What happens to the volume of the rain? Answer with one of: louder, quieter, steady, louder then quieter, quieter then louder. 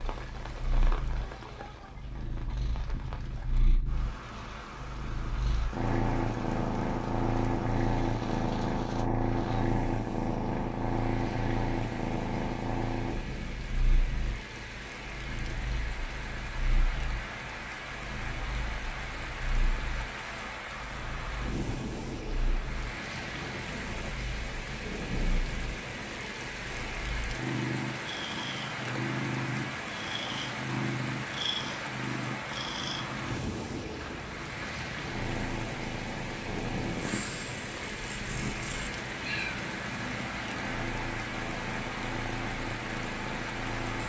louder.